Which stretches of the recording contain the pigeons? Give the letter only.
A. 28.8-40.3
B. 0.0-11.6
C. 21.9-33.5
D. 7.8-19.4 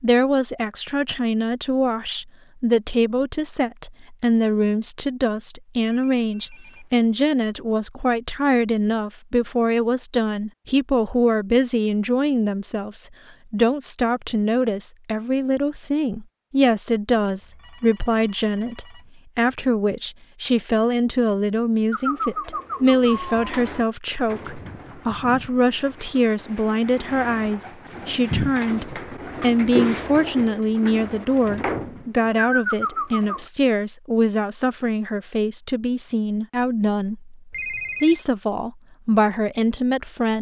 C.